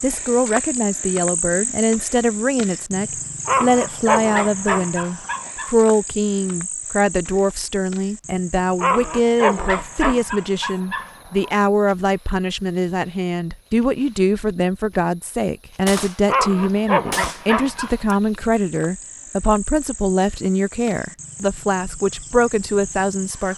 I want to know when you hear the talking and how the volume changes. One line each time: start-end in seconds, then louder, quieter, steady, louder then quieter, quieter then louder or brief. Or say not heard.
0.0-23.5 steady.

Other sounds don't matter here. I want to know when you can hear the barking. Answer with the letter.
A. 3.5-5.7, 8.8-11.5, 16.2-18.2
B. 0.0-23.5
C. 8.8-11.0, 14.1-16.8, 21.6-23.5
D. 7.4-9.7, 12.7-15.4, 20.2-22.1
A.